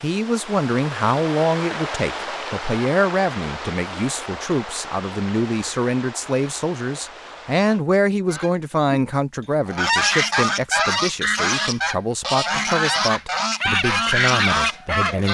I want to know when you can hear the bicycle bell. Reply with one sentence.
The bicycle bell can't be heard in this clip.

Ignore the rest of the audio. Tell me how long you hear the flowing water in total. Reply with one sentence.
The flowing water can be heard for 8 seconds in total.